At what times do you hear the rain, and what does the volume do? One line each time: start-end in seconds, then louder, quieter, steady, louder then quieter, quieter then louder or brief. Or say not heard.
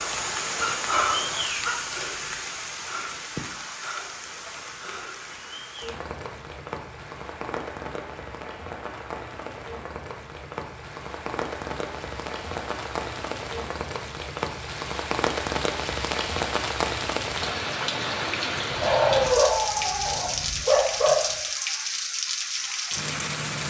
0.0-23.6 quieter then louder.